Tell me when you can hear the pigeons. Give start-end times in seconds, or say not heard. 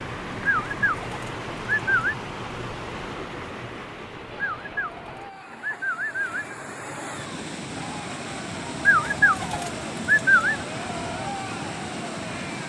0.5-2.1, 4.3-6.5, 8.8-10.6.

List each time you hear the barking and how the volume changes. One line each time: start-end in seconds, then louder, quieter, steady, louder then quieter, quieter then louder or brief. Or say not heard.
not heard.